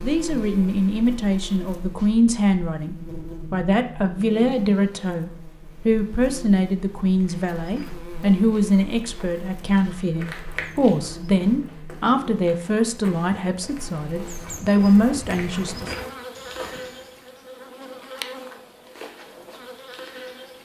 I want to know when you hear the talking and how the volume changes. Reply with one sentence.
The talking can be heard from 0.0 to 15.9 s, at a steady volume.